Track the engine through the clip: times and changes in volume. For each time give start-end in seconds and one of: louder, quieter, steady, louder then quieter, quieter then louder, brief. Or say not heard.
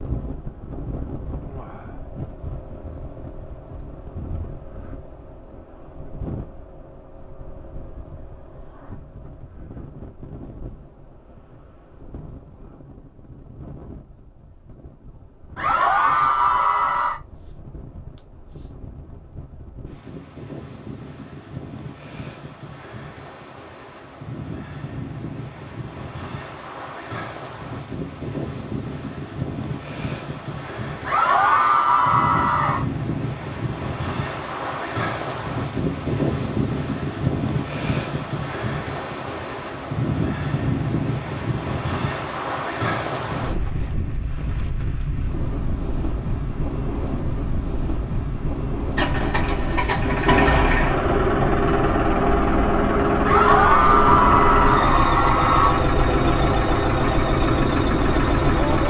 49.0-58.8 steady.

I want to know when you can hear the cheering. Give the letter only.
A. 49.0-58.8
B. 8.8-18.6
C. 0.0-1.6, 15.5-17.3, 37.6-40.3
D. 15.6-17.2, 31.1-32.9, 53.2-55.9
D.